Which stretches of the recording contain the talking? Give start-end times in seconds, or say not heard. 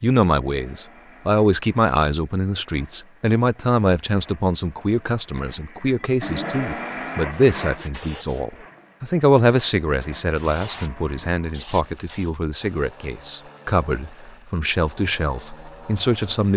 0.0-16.5.